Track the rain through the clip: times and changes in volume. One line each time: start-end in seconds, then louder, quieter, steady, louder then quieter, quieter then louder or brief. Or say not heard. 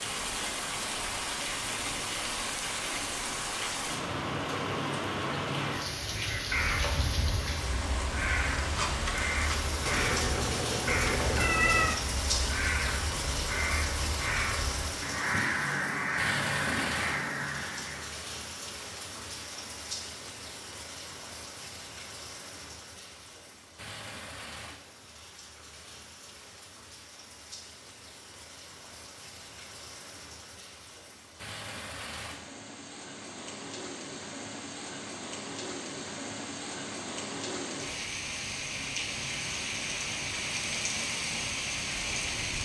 0.0-42.6 quieter then louder.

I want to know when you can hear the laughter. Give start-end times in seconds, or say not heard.
not heard.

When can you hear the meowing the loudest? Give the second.
12 s.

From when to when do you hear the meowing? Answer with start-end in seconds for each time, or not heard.
9.8-12.0.